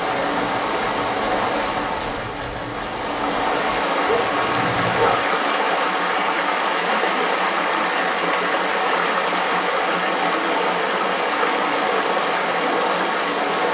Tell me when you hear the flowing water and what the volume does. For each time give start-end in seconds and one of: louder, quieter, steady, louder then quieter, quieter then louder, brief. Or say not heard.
0.0-13.6 steady.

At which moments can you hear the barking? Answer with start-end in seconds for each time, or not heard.
4.0-5.2.